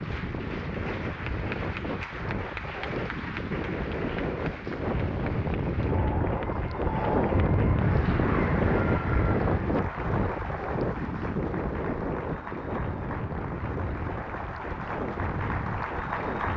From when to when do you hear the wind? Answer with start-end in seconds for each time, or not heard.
0.0-16.5.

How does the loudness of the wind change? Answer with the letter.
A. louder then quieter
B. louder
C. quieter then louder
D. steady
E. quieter
A.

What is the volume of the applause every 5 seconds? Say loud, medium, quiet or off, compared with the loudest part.
medium, loud, medium, loud.